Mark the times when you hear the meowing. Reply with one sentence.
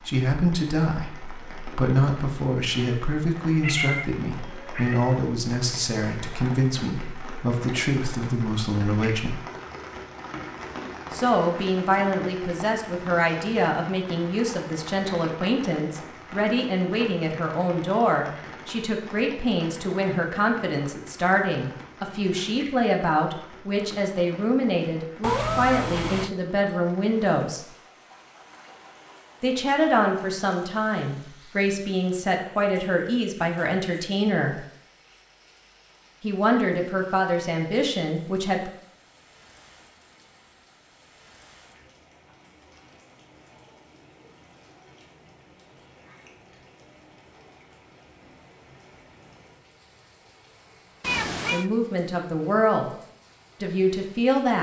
The meowing can be heard from 3.6 to 5.2 s, from 25.2 to 26.3 s and from 51.0 to 51.7 s.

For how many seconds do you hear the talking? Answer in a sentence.
The talking can be heard for 36 seconds in total.